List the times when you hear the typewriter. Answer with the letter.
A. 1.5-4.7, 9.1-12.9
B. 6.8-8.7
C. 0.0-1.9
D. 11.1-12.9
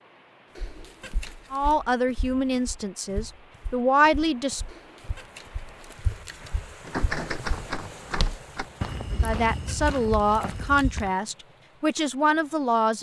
B.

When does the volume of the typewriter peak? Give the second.
7 s.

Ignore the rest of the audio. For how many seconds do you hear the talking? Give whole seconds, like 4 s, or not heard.
7 s.